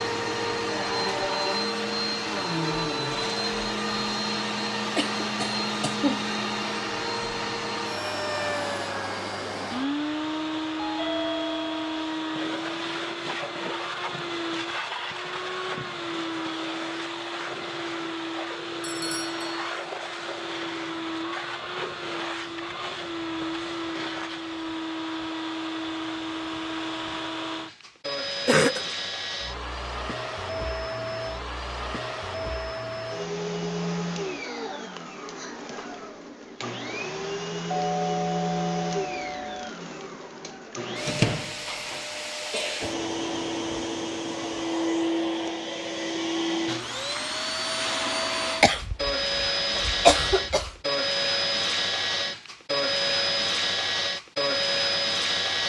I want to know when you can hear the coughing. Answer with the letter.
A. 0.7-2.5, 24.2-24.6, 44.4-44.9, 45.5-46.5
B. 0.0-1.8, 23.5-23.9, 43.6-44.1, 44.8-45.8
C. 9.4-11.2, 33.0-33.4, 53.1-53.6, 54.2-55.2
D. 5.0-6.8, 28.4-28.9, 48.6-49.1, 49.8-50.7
D.